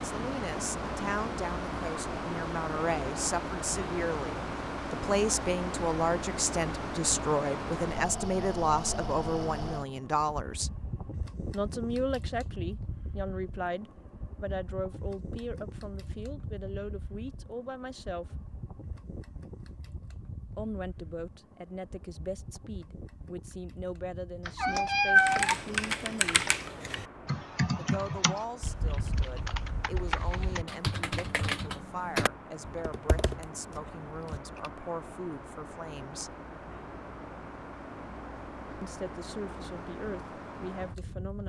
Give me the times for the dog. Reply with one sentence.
The dog can't be heard in this clip.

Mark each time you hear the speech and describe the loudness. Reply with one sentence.
The speech can be heard from 0.0 to 10.7 s, getting louder; from 11.5 to 18.4 s, getting quieter; from 20.6 to 26.5 s, at a steady volume; from 27.8 to 36.4 s, at a steady volume; and briefly from 38.8 to 41.4 s.